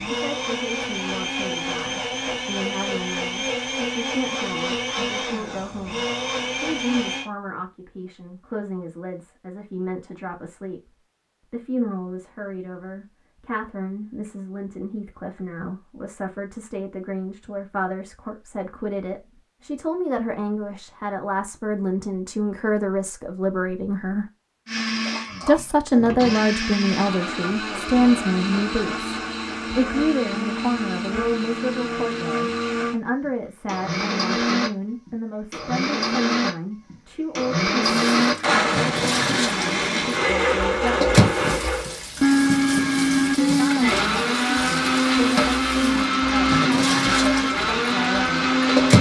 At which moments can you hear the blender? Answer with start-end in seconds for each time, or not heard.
0.0-7.2, 24.6-48.9.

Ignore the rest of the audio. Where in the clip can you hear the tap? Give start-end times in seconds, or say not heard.
38.0-48.9.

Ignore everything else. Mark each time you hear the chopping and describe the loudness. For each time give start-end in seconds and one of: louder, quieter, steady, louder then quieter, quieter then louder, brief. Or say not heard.
not heard.